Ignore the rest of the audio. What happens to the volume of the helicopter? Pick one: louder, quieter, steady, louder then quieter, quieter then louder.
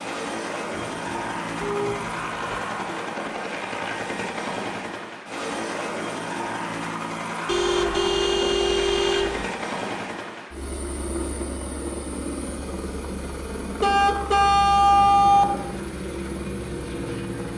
steady.